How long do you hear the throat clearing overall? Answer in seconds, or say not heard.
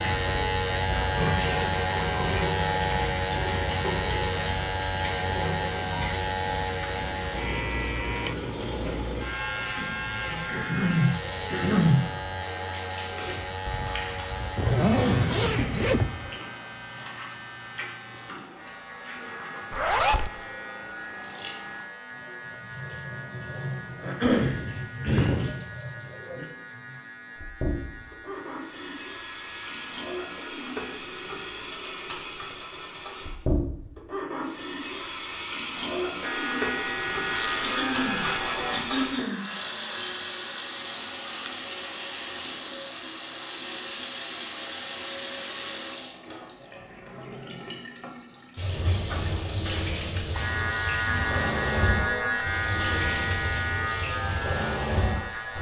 5 s.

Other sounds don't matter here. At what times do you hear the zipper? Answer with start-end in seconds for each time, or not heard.
13.7-16.4, 19.7-20.3, 37.2-39.1.